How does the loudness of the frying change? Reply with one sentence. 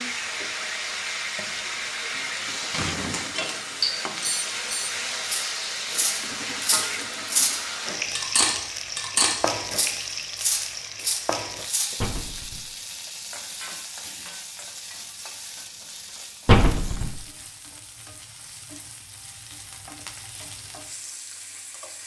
The loudness of the frying goes down.